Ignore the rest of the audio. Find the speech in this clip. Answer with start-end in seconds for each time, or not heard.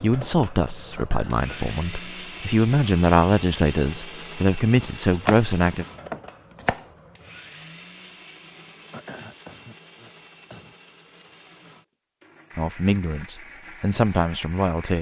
0.0-5.8, 12.6-14.9.